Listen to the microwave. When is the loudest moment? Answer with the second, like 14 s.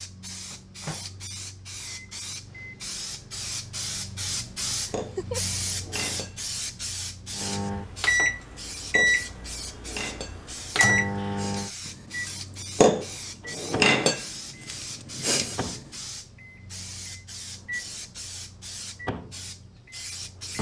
9 s.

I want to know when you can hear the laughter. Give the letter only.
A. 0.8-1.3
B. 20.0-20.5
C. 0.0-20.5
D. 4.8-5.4
D.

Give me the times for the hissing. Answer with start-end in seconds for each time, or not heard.
0.0-20.5.